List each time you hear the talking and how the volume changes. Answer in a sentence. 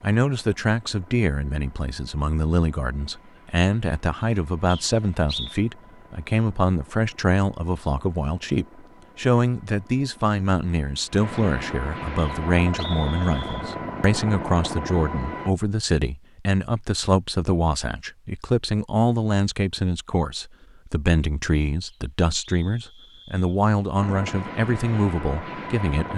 The talking can be heard from 0.0 to 26.1 s, at a steady volume.